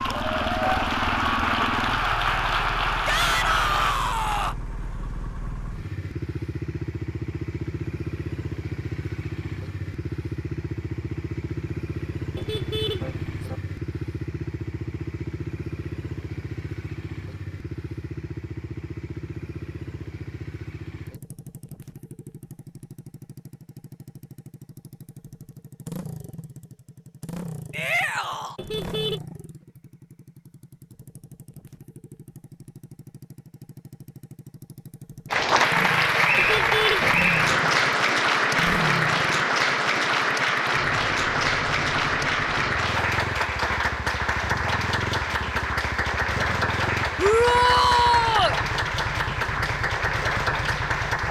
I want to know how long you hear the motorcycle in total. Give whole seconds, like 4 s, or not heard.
51 s.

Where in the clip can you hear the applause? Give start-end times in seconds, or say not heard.
0.0-4.0, 35.3-51.2.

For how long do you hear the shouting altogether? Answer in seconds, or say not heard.
4 s.